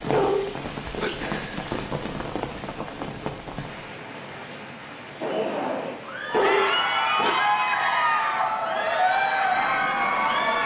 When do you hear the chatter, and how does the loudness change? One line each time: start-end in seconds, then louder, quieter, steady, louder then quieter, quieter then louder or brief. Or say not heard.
5.2-10.6 louder.